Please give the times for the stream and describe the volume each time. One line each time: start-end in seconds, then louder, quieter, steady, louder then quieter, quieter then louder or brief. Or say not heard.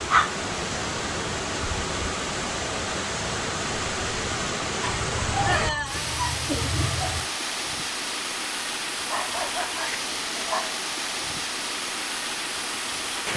0.0-13.3 steady.